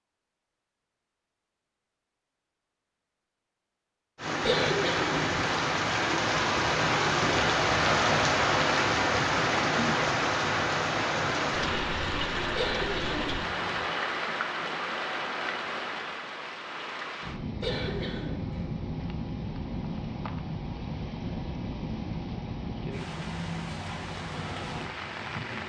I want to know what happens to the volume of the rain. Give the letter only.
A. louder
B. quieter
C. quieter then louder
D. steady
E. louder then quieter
B.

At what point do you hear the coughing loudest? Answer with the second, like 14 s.
5 s.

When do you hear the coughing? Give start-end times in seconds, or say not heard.
4.4-5.2, 12.6-13.8, 17.6-18.6.